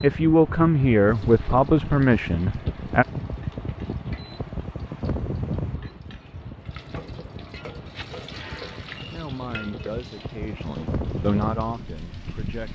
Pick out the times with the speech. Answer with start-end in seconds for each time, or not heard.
0.0-3.0, 9.1-12.7.